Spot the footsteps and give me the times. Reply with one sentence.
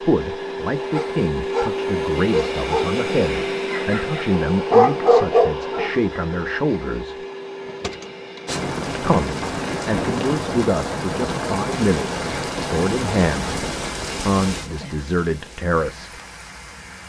The footsteps can't be heard in this clip.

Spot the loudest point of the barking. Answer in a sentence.
The loudest moment of the barking is at 5 seconds.